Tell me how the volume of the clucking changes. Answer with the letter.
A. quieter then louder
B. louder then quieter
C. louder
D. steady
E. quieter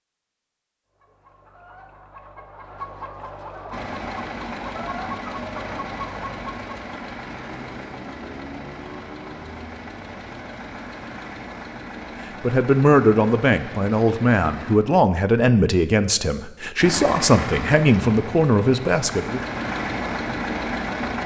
C.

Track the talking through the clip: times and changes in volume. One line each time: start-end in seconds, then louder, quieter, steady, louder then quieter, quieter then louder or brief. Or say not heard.
12.4-19.4 steady.